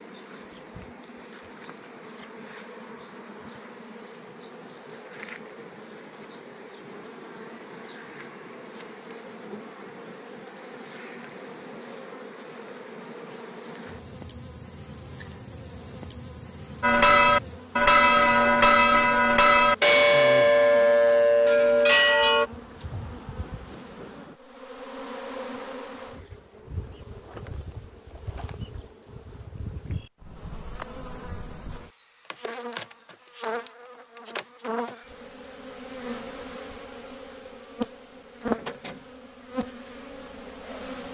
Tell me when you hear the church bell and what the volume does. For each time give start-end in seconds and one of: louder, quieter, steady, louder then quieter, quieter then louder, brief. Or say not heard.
16.8-22.5 steady.